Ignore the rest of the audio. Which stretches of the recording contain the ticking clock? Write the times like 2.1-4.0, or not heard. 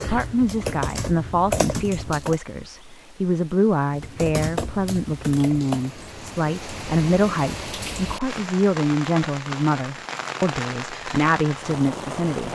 not heard.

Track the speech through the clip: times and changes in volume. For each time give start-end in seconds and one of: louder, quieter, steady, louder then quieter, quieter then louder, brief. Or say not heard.
0.0-12.5 steady.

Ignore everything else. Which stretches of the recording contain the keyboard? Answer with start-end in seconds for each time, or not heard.
0.0-2.4, 3.9-5.9.